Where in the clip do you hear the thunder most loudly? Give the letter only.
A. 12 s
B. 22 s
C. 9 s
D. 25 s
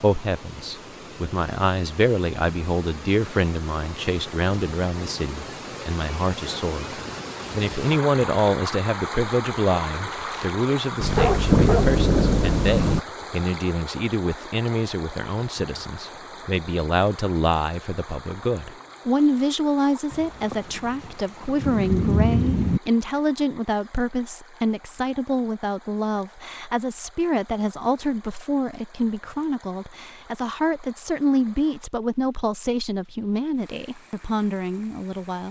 A.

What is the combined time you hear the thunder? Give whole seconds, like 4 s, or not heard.
5 s.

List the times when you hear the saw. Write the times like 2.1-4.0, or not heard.
not heard.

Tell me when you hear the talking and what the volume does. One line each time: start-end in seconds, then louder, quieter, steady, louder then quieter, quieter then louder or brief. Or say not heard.
0.0-35.4 steady.